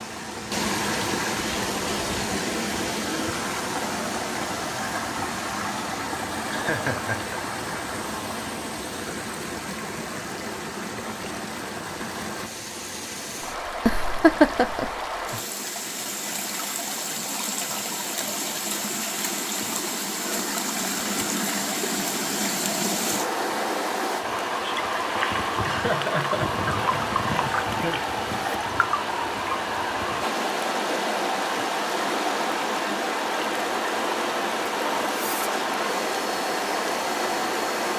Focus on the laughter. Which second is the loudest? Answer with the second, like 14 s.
14 s.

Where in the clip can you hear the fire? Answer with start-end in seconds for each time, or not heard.
not heard.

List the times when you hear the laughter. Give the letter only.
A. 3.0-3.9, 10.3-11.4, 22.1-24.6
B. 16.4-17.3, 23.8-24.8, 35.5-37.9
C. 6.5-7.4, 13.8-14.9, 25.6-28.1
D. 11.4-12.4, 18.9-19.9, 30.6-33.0
C.